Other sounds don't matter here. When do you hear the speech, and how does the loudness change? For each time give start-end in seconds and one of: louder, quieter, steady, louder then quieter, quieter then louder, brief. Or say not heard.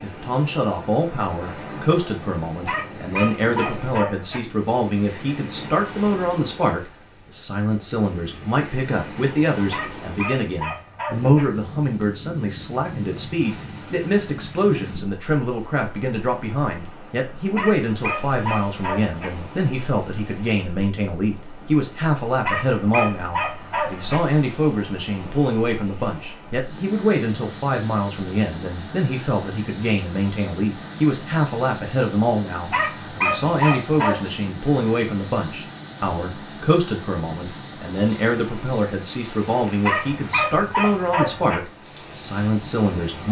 0.0-43.2 steady.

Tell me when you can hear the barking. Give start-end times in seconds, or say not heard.
2.6-4.4, 9.7-11.4, 17.6-19.3, 22.4-24.2, 32.7-34.3, 39.8-41.6.